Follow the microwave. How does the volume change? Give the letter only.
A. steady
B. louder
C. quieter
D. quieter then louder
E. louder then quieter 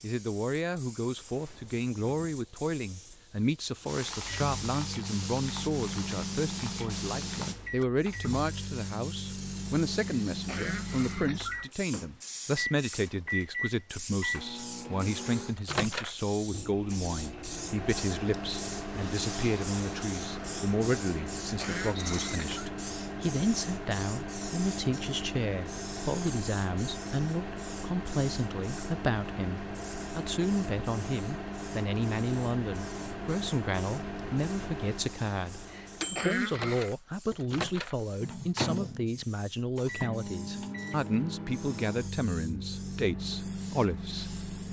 A.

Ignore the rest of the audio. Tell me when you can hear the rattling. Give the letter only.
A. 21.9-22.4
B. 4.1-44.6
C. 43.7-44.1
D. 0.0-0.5
A.